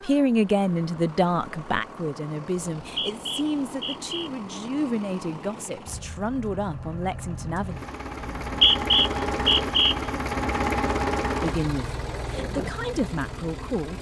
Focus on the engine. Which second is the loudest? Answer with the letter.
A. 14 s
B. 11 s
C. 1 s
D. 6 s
B.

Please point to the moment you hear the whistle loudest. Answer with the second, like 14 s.
9 s.